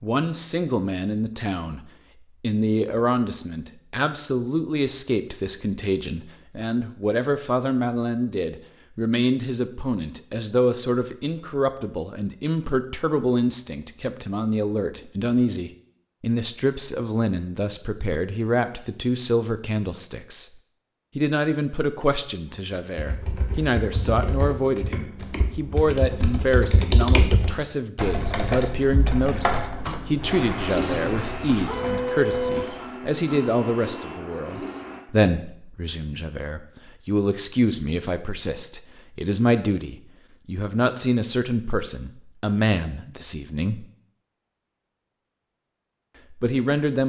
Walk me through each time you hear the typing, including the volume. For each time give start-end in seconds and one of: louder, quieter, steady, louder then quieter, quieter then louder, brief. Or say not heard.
22.8-32.6 louder then quieter.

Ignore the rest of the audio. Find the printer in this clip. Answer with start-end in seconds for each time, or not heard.
29.8-35.0.